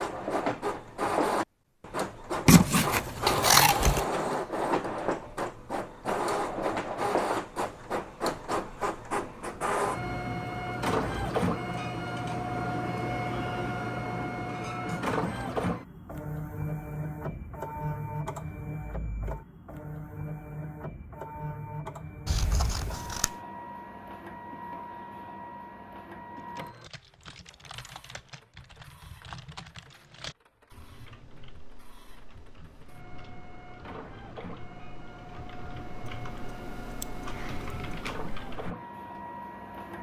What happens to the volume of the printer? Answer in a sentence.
The volume of the printer goes down.